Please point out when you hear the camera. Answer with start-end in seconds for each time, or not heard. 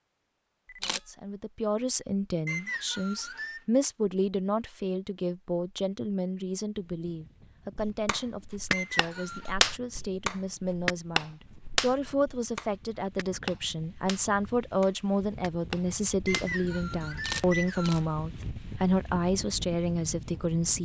0.7-1.1, 17.1-18.0.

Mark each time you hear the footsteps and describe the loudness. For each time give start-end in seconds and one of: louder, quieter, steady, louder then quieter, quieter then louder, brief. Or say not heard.
not heard.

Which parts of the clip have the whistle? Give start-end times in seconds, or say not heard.
2.5-3.6, 8.7-9.6, 16.2-18.1.